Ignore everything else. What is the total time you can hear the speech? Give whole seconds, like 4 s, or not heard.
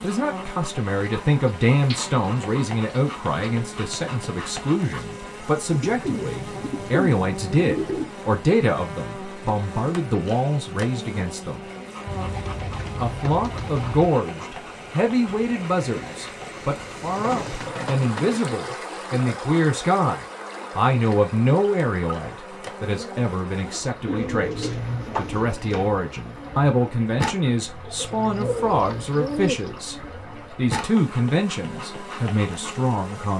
32 s.